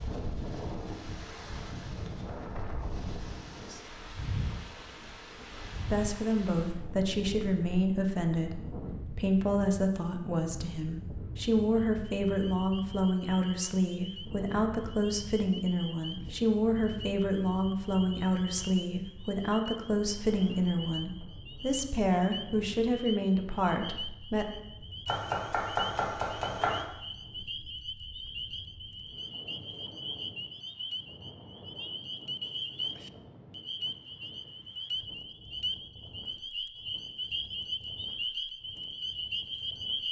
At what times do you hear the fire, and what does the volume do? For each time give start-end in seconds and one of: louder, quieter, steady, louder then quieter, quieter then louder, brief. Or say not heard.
not heard.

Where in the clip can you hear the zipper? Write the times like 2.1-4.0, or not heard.
not heard.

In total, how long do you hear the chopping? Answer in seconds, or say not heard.
2 s.